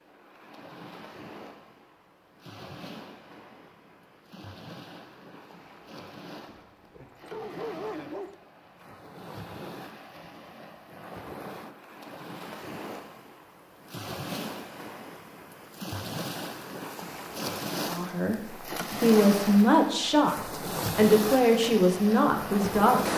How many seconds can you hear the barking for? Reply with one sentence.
You can hear the barking for 2 seconds altogether.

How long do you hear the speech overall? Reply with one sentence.
You can hear the speech for 5 seconds altogether.